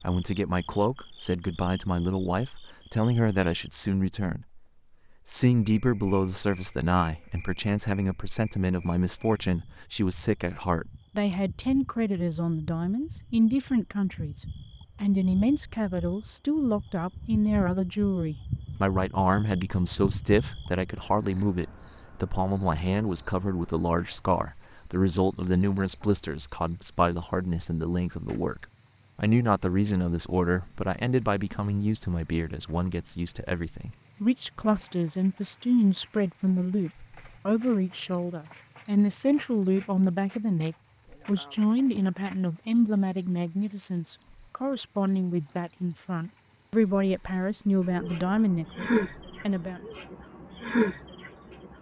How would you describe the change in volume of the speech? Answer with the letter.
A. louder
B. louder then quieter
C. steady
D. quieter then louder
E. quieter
C.